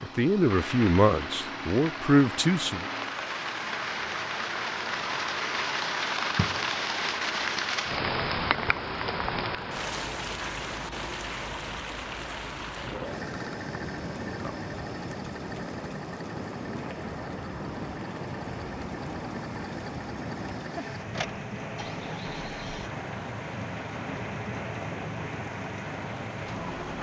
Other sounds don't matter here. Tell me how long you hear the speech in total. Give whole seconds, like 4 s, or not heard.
3 s.